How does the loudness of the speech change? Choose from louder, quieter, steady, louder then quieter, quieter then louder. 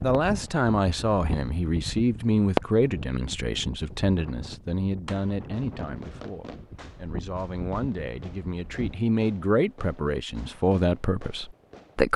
quieter then louder.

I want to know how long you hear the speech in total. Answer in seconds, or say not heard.
12 s.